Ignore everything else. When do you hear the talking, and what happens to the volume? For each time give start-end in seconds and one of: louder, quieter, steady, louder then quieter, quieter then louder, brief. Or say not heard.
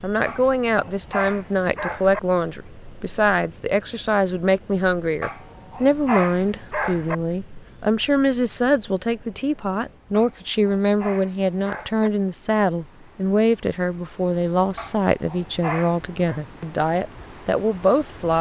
0.0-18.3 steady.